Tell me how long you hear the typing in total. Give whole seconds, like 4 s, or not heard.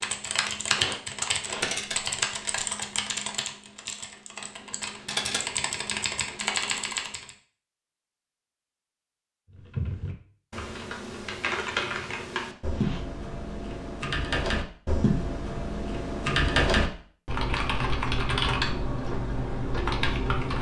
18 s.